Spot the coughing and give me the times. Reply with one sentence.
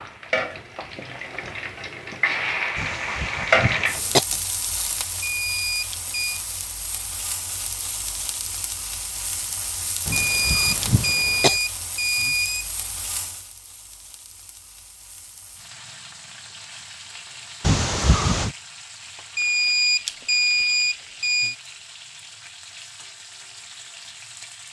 You can hear the coughing from 2.8 to 4.2 s, from 10.1 to 11.6 s and from 17.6 to 18.6 s.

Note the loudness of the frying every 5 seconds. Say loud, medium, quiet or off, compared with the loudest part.
loud, medium, medium, quiet, quiet.